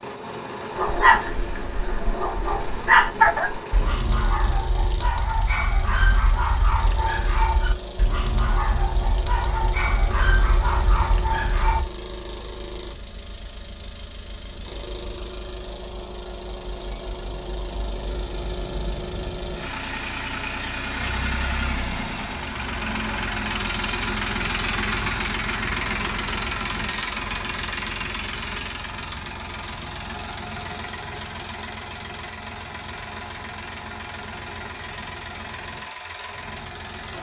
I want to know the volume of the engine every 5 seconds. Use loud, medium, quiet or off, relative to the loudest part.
medium, medium, medium, medium, loud, loud, medium, medium.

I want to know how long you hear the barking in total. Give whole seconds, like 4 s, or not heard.
11 s.